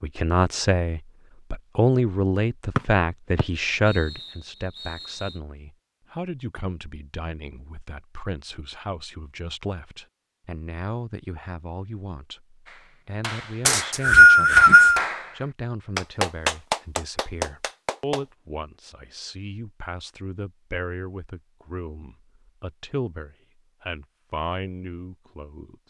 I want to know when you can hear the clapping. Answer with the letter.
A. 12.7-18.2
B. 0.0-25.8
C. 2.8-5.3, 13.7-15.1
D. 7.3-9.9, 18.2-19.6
A.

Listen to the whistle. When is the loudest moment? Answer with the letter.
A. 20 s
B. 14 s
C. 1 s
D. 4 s
B.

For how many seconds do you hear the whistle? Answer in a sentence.
You can hear the whistle for 4 seconds altogether.